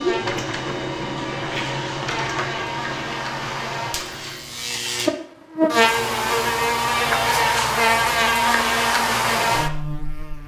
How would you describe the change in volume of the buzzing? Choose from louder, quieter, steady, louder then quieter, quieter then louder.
louder.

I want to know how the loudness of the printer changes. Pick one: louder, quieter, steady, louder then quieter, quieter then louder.
quieter.